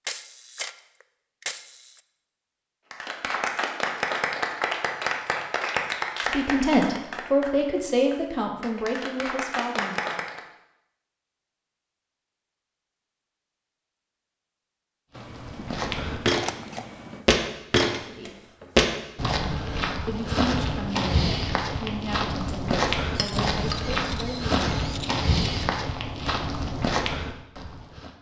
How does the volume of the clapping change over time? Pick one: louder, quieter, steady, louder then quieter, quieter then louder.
quieter then louder.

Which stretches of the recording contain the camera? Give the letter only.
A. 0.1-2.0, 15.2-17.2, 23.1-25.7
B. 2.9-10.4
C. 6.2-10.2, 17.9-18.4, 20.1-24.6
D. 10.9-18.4
A.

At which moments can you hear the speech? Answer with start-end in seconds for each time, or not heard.
6.2-10.2, 17.9-18.4, 20.1-24.6.